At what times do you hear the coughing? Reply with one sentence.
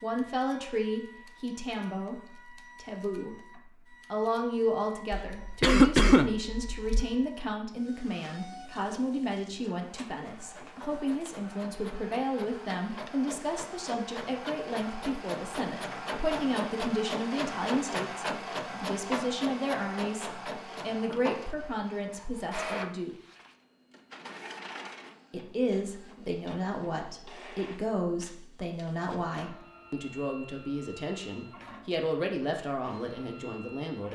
The coughing can be heard from 5.1 to 7.0 s.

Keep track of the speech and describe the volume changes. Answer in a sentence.
The loudness of the speech stays about the same.